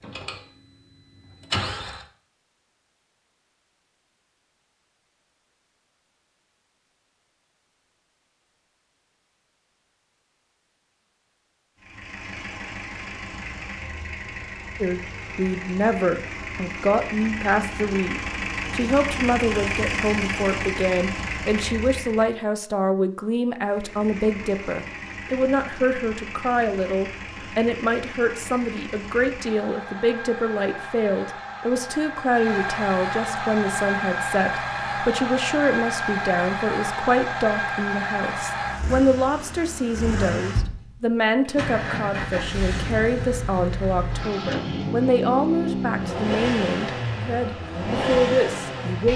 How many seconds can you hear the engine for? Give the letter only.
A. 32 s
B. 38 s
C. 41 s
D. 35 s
B.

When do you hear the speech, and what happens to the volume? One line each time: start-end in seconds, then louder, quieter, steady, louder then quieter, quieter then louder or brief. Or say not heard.
14.8-49.1 steady.